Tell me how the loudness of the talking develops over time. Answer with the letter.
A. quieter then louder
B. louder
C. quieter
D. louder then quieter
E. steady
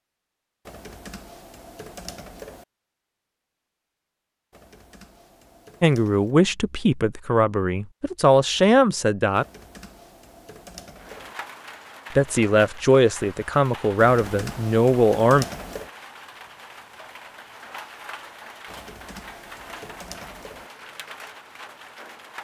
E.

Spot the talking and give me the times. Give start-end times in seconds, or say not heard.
5.8-9.4, 12.2-15.4.